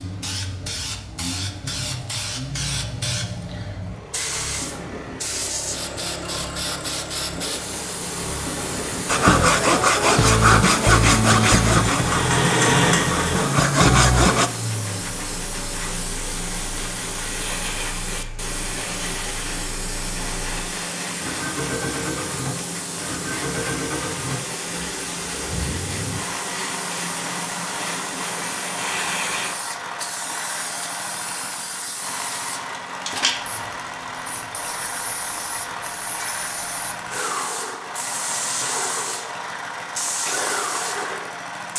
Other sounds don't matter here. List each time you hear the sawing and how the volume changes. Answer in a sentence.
The sawing can be heard from 9.1 to 14.5 s, getting quieter then louder.